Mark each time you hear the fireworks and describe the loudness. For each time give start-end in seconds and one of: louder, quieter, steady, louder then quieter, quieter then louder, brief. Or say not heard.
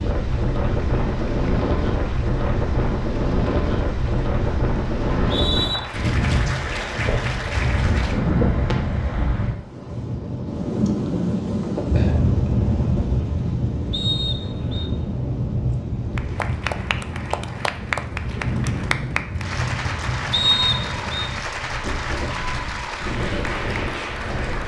not heard.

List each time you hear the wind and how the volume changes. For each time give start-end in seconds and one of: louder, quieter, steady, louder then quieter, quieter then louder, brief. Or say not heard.
0.0-24.6 quieter.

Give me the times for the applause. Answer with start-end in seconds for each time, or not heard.
0.1-8.2, 16.1-24.6.